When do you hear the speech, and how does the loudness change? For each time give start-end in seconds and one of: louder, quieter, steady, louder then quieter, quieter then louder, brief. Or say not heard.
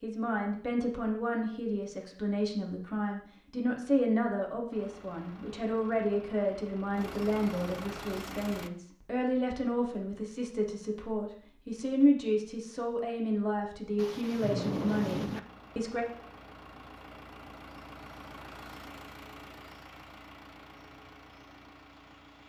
0.0-16.1 steady.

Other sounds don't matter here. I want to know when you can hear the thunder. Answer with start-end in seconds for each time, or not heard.
13.9-15.4.